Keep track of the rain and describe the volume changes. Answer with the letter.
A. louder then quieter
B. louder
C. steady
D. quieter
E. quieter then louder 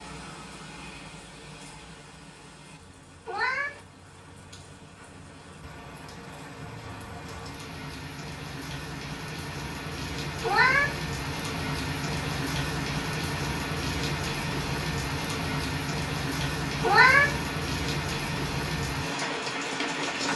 B.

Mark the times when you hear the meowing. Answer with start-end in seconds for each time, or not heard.
3.2-3.8, 10.4-11.0, 16.8-17.4.